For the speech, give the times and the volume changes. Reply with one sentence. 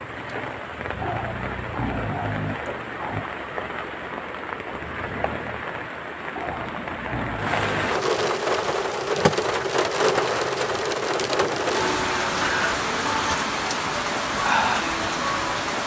The speech can't be heard in this clip.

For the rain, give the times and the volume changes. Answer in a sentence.
The rain can be heard from 0.0 to 15.8 s, getting louder.